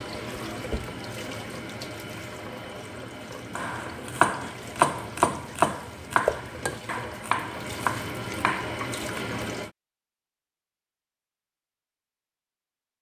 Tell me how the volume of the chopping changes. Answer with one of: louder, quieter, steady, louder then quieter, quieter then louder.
quieter.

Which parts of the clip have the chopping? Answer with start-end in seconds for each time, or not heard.
3.5-9.2.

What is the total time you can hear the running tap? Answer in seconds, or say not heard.
10 s.